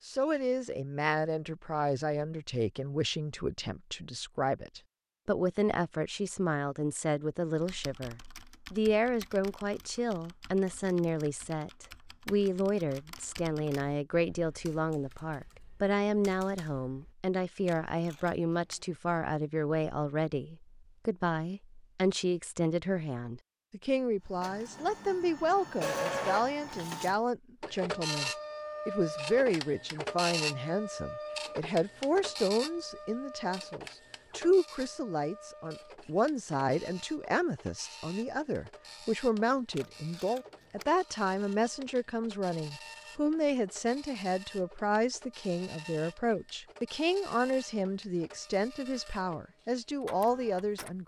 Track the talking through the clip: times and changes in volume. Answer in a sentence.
The talking can be heard from 0.1 to 51.0 s, at a steady volume.